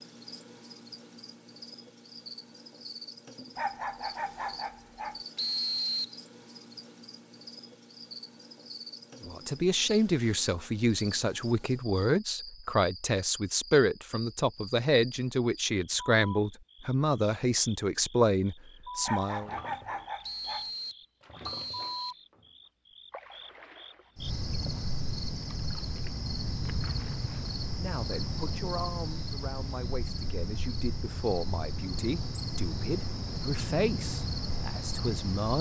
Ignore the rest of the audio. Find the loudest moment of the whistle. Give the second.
6 s.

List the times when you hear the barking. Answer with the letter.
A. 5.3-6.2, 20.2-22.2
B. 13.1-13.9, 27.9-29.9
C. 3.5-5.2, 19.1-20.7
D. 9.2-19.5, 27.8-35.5
C.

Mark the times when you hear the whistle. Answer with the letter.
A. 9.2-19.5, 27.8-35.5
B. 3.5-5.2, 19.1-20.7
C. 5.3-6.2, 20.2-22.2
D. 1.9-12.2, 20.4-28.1
C.